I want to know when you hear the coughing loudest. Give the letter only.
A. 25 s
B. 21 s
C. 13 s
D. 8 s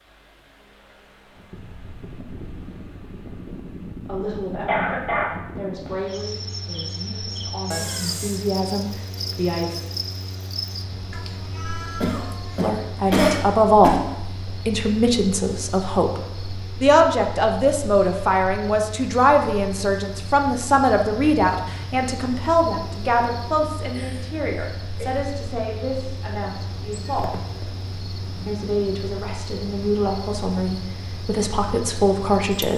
C.